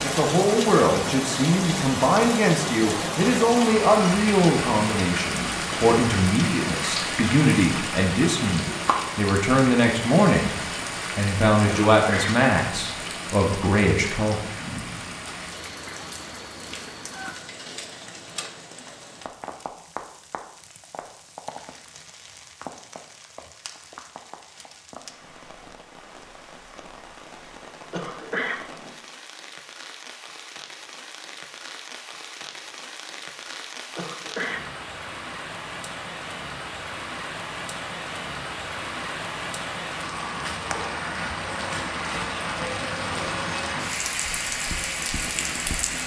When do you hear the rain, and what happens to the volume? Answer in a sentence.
The rain can be heard from 0.0 to 46.0 s, getting quieter then louder.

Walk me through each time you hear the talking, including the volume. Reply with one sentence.
The talking can be heard from 0.0 to 14.4 s, at a steady volume.